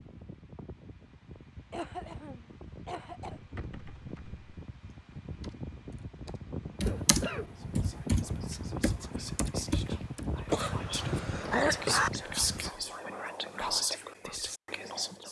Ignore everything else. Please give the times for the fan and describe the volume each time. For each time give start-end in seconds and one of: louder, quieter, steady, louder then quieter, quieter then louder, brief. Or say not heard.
0.0-12.7 louder.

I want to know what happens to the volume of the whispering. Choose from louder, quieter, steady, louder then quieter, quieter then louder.
louder.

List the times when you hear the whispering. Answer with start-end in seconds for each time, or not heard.
7.5-15.2.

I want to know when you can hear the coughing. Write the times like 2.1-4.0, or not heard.
1.7-3.4, 6.8-7.5, 10.4-12.1.